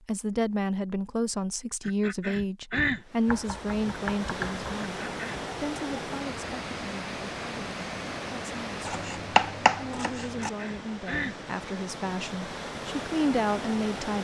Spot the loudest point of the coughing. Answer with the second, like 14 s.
3 s.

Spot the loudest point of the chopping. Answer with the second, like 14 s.
10 s.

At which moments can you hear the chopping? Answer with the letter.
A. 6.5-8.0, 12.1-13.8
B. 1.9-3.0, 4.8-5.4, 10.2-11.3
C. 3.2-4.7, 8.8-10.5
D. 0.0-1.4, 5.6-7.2
C.